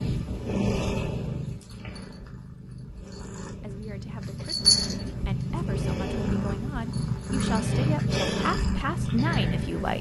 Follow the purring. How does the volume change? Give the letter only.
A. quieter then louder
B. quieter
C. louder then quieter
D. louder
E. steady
A.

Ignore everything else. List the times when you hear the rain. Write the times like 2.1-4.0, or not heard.
not heard.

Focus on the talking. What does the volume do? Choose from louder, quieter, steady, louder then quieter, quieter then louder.
louder.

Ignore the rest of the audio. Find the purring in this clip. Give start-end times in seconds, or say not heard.
0.0-9.9.